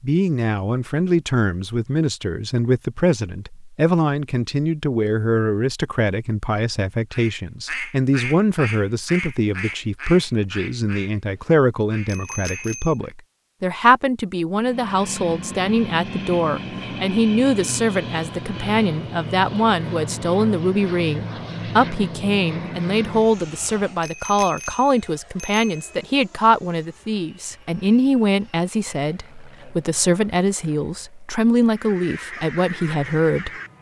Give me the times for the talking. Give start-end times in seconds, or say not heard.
0.0-33.7.